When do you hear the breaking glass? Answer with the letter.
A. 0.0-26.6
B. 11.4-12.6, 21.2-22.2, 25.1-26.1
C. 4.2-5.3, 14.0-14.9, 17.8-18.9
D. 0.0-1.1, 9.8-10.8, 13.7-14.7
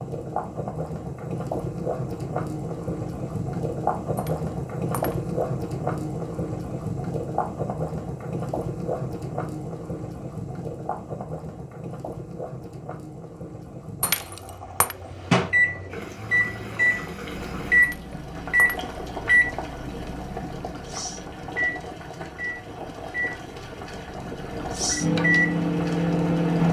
C.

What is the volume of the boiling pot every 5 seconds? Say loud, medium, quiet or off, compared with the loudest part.
loud, loud, medium, medium, medium, medium.